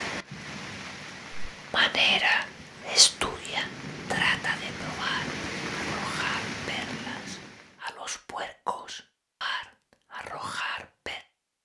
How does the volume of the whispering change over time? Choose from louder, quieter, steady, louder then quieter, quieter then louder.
quieter.